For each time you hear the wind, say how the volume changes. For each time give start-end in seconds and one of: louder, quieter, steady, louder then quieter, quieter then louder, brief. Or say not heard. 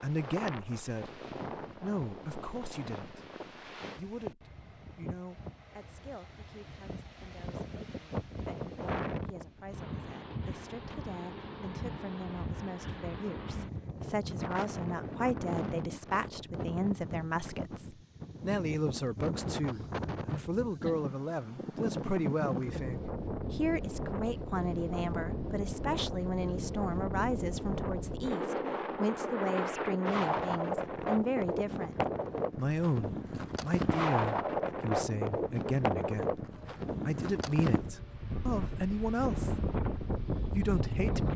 0.0-41.3 louder.